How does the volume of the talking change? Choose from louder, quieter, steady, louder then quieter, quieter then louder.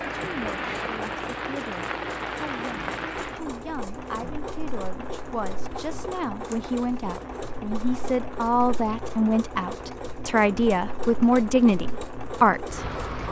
louder.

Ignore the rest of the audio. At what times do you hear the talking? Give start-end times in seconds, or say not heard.
0.2-13.2.